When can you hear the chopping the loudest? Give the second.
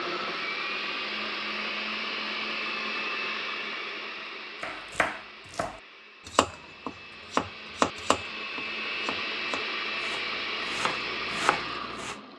8 s.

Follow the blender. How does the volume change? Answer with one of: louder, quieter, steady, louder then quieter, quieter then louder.
quieter then louder.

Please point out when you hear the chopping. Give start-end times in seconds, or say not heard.
4.6-12.2.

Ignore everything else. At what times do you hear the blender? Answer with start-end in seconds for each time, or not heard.
0.0-12.3.